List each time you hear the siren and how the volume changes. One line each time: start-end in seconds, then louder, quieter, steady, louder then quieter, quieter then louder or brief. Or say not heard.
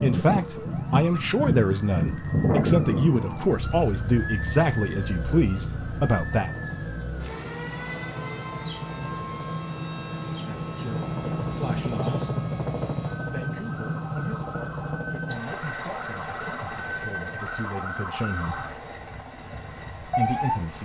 0.0-20.7 quieter then louder.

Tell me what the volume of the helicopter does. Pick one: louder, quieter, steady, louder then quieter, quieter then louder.
louder then quieter.